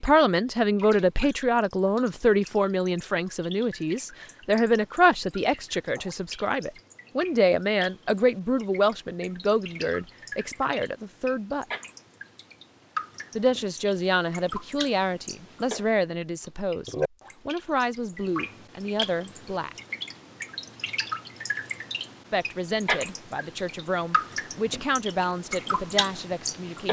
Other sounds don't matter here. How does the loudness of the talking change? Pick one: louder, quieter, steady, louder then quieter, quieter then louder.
quieter.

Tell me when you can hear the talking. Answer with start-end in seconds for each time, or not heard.
0.0-11.7, 13.3-19.8, 22.3-26.8.